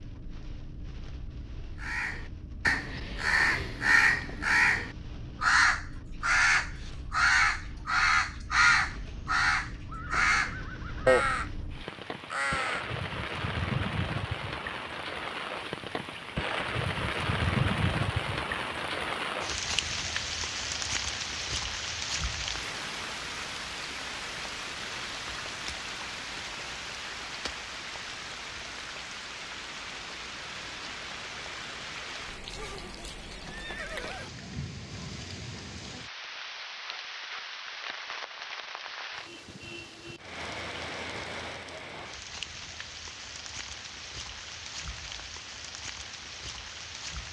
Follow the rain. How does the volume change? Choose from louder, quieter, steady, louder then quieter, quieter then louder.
louder then quieter.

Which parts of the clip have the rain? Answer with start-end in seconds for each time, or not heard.
0.0-47.2.